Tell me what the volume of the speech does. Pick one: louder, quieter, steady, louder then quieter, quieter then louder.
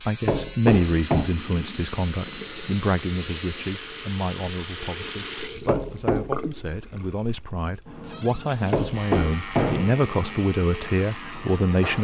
quieter then louder.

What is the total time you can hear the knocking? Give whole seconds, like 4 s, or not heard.
3 s.